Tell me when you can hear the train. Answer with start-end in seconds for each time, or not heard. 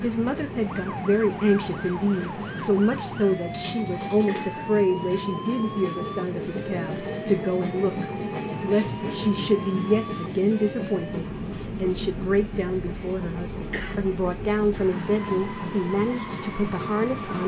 0.0-17.4.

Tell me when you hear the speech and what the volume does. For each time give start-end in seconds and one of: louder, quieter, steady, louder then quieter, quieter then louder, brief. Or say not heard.
0.0-17.4 steady.